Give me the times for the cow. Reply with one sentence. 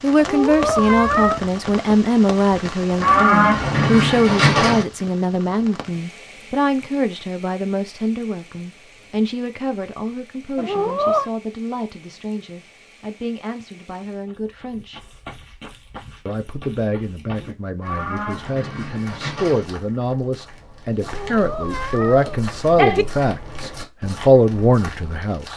You can hear the cow from 3.0 to 4.8 s and from 17.8 to 19.6 s.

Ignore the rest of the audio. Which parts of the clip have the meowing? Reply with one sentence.
You can hear the meowing from 0.1 to 1.4 s, from 10.6 to 11.3 s and from 21.1 to 23.1 s.